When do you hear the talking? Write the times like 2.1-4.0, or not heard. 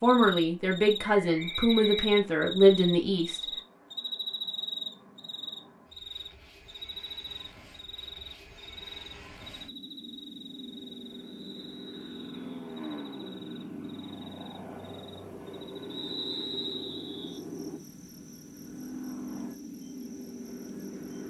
0.0-3.4.